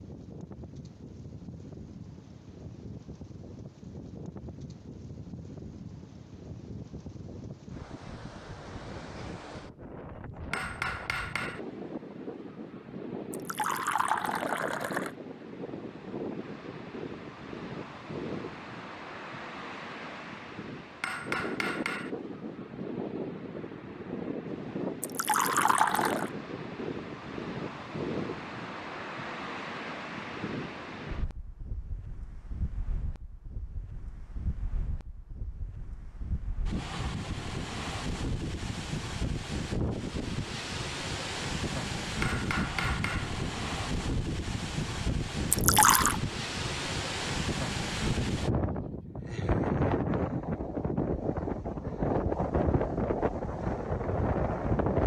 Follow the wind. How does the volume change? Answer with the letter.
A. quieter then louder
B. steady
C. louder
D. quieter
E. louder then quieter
C.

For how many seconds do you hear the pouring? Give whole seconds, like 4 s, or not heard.
4 s.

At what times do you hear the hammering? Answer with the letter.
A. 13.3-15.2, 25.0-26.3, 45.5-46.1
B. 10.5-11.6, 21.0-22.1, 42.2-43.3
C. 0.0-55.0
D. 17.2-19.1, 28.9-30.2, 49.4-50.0
B.